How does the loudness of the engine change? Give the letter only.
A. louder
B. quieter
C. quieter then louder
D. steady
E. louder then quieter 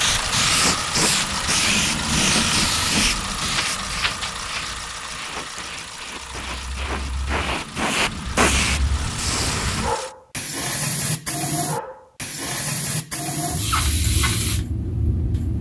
B.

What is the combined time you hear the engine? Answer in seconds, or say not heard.
10 s.